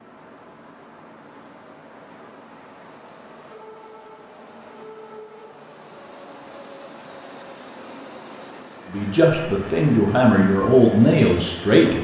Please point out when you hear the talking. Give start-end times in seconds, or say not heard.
8.9-11.9.